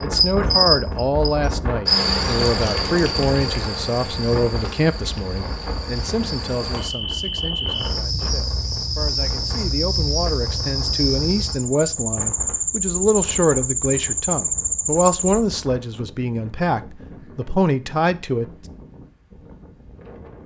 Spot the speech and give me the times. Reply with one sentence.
You can hear the speech from 0.0 to 18.4 s.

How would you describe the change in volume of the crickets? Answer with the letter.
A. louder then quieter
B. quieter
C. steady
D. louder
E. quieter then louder
E.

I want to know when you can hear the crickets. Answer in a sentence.
You can hear the crickets from 0.0 to 15.4 s.